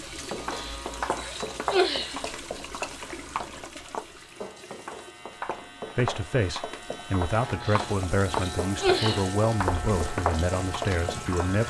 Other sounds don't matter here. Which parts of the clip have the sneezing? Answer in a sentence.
You can hear the sneezing from 0.5 to 2.2 s and from 7.6 to 9.3 s.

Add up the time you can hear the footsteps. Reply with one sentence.
The footsteps can be heard for 11 seconds in total.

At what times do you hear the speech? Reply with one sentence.
You can hear the speech from 6.0 to 11.6 s.